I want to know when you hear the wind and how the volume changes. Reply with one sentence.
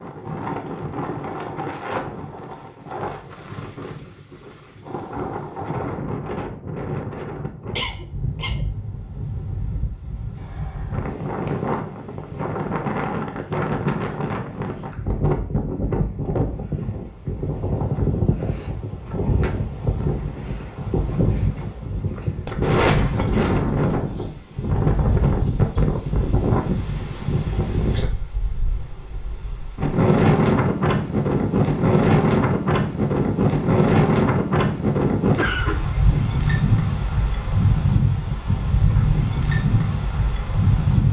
The wind can be heard from 0.0 to 41.0 s, getting louder.